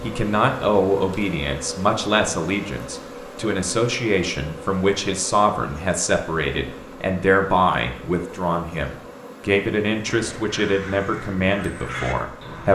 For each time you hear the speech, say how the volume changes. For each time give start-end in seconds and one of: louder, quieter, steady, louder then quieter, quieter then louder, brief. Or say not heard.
0.0-12.7 steady.